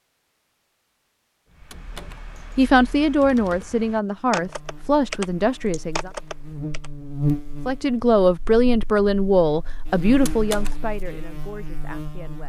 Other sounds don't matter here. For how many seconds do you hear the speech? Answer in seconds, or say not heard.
8 s.